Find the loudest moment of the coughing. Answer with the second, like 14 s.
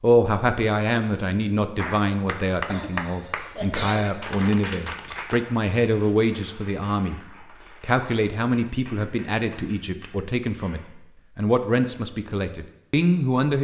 4 s.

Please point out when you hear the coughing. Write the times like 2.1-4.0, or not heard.
2.6-4.2.